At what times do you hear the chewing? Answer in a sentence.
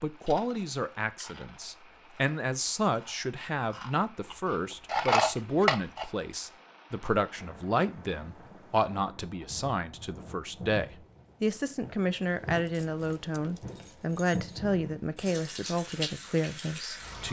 The chewing can be heard from 0.2 to 6.0 s.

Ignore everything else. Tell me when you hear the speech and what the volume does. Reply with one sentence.
The speech can be heard from 0.0 to 17.2 s, at a steady volume.